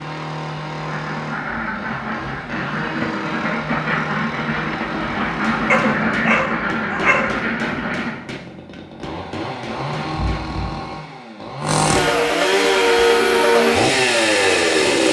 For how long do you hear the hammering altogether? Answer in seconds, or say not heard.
5 s.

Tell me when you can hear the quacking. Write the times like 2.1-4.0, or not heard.
0.8-8.2.